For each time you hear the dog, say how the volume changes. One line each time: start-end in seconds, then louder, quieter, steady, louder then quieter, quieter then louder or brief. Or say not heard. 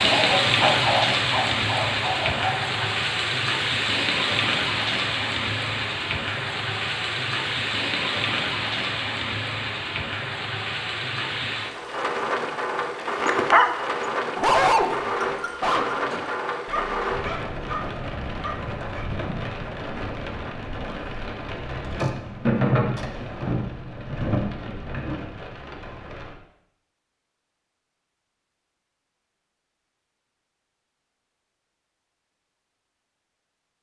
0.0-2.9 brief
13.1-19.1 quieter.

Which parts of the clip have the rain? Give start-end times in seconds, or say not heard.
0.0-26.4.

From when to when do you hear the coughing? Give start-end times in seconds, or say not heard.
not heard.